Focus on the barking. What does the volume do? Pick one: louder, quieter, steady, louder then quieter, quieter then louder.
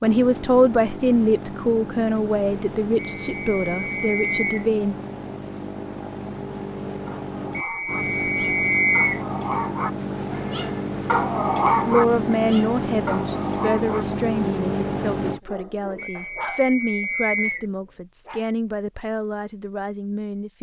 louder then quieter.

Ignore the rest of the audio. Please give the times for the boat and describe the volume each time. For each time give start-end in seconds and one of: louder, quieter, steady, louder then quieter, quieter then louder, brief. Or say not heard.
0.0-15.4 louder.